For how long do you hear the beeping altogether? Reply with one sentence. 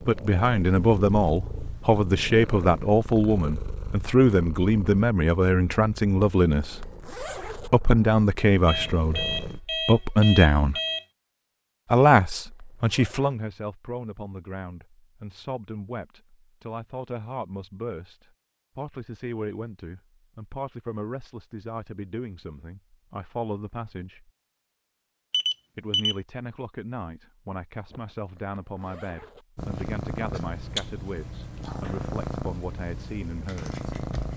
You can hear the beeping for 3 seconds altogether.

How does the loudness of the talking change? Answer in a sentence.
The volume of the talking goes down.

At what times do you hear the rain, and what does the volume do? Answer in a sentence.
You can't hear the rain here.